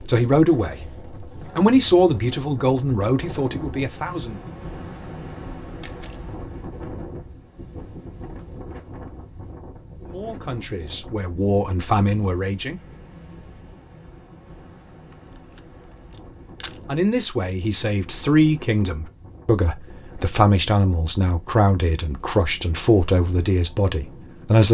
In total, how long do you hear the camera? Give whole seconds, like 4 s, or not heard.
2 s.